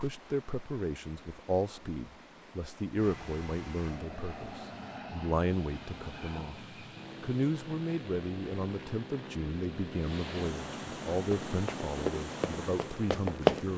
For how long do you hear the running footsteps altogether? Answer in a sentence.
The running footsteps can be heard for 3 seconds in total.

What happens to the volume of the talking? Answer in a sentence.
The volume of the talking stays about the same.